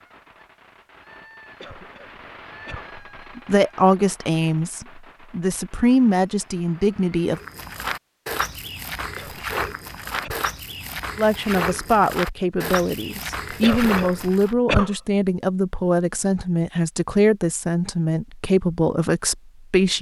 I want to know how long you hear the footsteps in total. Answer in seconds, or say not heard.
7 s.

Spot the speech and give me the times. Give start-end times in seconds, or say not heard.
3.4-7.4, 11.2-19.9.